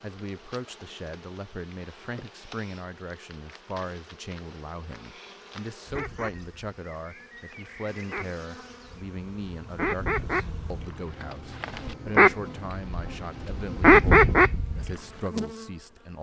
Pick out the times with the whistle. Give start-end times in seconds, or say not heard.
not heard.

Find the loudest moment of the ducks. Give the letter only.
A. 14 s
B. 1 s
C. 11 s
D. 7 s
A.